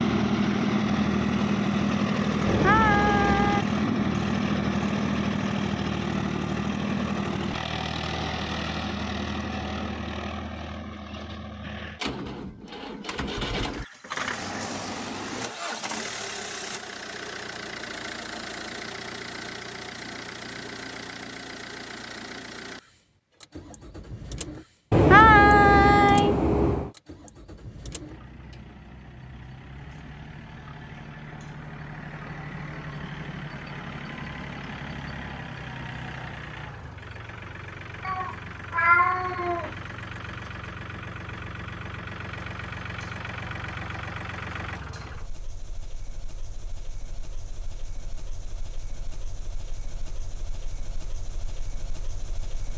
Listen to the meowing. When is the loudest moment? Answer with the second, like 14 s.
25 s.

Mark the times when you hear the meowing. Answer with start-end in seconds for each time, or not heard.
2.5-3.6, 24.9-26.9, 38.0-39.7.